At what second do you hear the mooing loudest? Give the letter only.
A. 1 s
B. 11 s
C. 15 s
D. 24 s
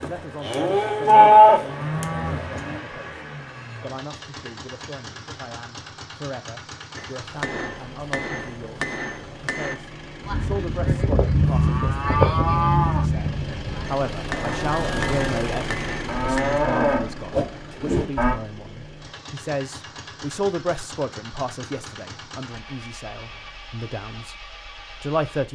A.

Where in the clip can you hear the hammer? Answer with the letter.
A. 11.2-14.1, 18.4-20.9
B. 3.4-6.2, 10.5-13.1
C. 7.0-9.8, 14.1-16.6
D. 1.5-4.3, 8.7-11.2
C.